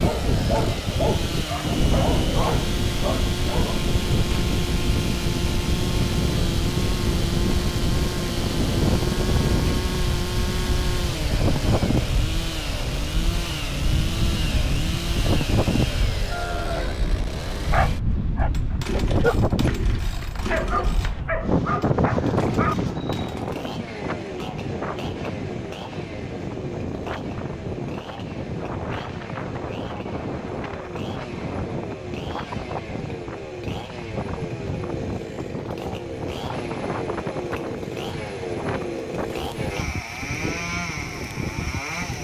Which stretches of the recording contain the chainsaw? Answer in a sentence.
The chainsaw can be heard from 0.0 to 42.2 s.